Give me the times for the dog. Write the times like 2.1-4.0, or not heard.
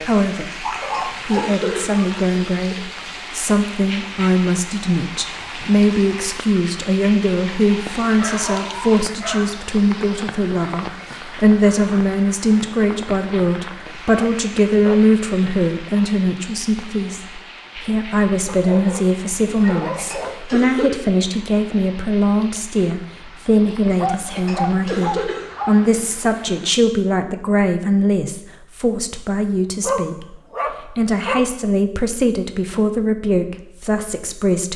0.6-2.1, 8.2-9.7, 14.2-15.1, 18.4-20.4, 23.9-25.8, 29.8-31.5.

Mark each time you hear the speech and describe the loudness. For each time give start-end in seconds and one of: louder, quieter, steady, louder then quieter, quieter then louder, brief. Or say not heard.
0.0-34.7 steady.